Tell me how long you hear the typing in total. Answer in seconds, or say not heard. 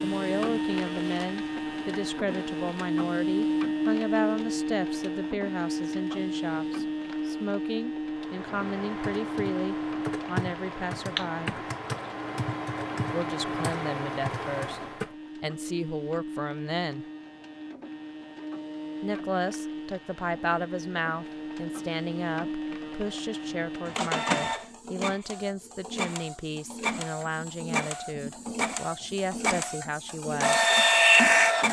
7 s.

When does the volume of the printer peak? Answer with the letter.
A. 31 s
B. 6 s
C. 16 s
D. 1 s
A.